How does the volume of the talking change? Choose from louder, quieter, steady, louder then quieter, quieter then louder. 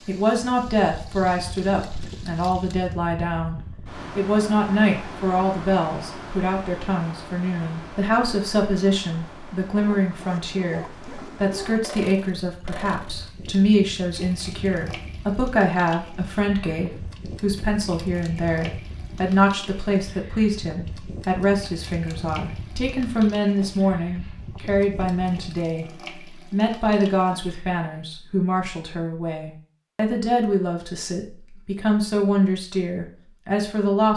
steady.